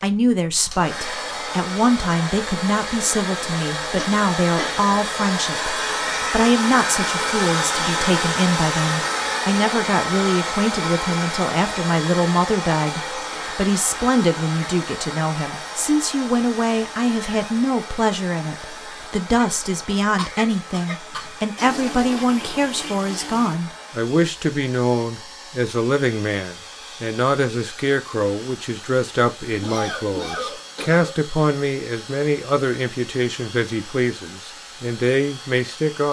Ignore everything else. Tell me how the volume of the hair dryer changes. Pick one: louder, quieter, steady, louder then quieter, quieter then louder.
quieter.